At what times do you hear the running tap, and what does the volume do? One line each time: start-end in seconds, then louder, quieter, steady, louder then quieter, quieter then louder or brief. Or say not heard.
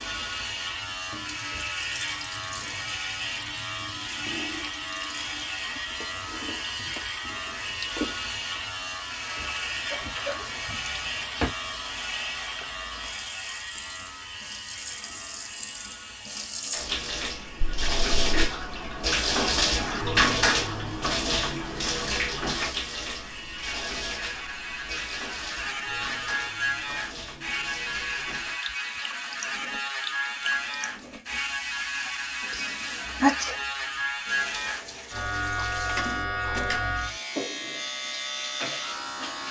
0.0-39.4 louder then quieter.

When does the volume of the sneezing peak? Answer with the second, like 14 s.
33 s.